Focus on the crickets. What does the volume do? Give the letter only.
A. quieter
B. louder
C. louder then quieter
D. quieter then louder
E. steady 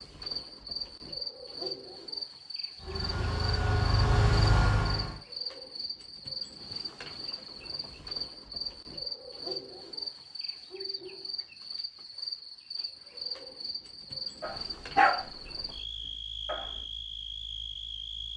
E.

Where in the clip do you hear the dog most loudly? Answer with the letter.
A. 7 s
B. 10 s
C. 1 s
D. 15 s
D.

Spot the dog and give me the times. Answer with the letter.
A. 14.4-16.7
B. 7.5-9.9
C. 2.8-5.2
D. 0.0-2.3
A.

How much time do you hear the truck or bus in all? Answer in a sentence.
You can hear the truck or bus for 2 seconds altogether.